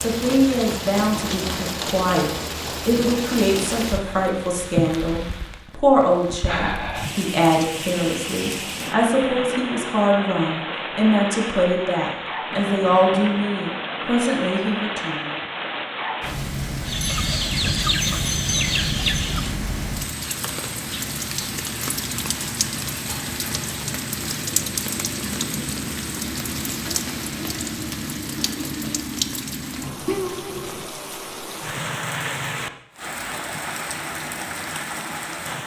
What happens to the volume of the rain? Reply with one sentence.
The loudness of the rain stays about the same.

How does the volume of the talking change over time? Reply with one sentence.
The volume of the talking stays about the same.